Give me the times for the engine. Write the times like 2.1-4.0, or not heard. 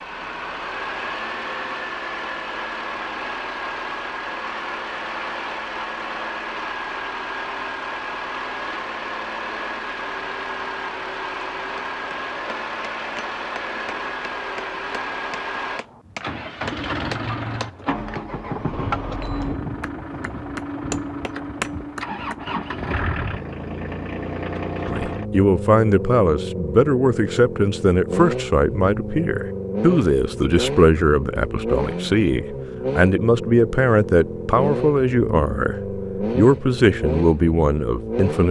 0.0-38.4.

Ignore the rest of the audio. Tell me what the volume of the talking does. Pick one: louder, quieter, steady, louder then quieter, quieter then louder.
steady.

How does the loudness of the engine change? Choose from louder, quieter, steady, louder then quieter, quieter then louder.
steady.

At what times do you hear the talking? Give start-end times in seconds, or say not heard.
24.9-38.4.